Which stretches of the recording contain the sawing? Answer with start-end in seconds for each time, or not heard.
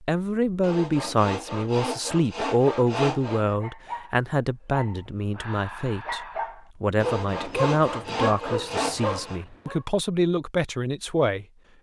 0.6-3.5, 7.0-9.4.